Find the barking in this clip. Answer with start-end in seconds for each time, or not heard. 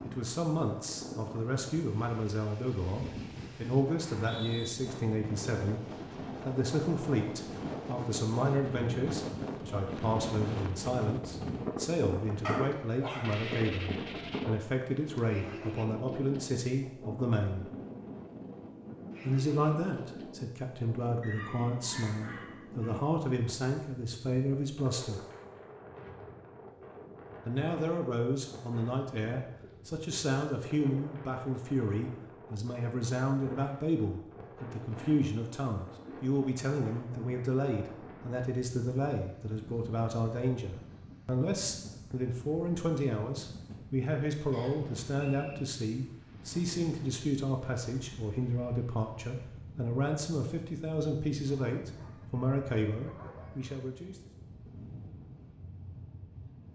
12.4-14.4, 21.2-23.1, 51.5-53.9.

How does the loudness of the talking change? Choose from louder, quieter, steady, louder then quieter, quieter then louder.
steady.